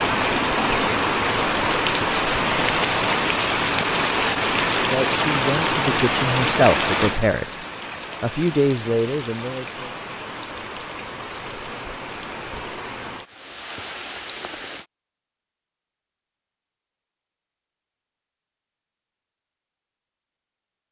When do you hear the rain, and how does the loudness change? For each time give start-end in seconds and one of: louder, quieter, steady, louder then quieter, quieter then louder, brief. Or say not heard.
0.0-14.8 quieter.